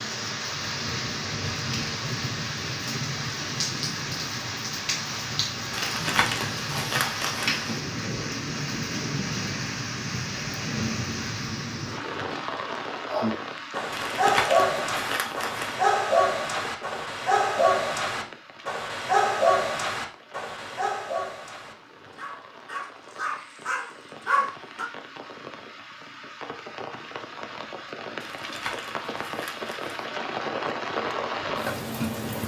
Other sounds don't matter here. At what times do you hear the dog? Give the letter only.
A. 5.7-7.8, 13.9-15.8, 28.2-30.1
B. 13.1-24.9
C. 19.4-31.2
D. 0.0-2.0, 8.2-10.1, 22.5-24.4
B.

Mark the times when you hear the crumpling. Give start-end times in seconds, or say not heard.
5.7-7.8, 13.9-15.8, 28.2-30.1.